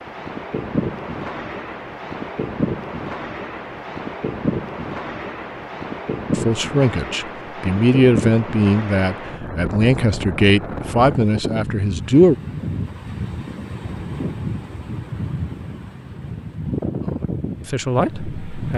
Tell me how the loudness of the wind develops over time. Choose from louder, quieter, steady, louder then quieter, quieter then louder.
steady.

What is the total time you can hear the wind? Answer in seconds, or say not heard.
19 s.